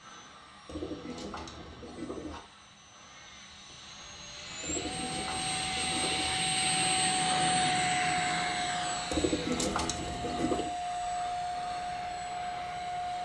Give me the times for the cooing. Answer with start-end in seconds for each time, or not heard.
0.7-2.4, 4.6-6.3, 9.1-10.7.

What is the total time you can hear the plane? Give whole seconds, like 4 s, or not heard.
13 s.